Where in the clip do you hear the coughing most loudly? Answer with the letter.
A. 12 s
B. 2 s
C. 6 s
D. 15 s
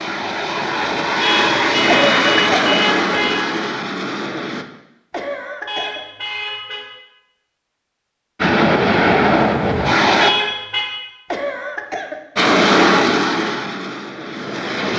B.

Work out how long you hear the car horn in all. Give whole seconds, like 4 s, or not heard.
4 s.